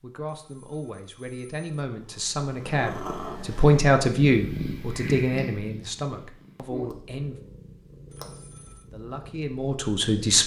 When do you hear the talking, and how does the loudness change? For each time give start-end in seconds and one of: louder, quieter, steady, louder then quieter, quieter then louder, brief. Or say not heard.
0.0-7.4 louder then quieter
8.9-10.4 brief.